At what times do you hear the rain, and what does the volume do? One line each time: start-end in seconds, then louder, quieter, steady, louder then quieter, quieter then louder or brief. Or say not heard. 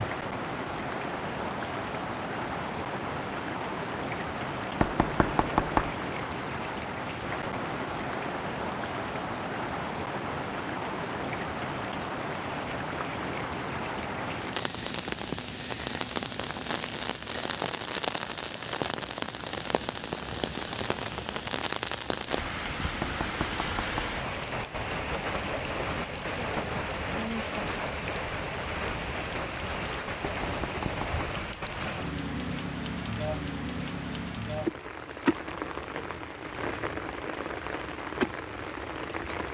0.0-39.4 steady.